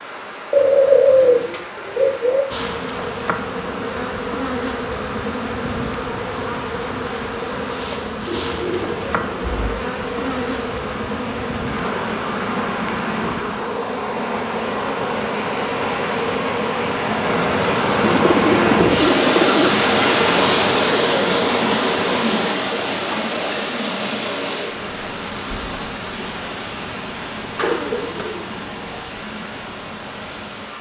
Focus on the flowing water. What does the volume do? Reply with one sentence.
The volume of the flowing water goes up, then down.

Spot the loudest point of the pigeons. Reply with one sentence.
The volume of the pigeons peaks at 1 second.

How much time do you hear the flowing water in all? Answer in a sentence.
The flowing water can be heard for 31 seconds in total.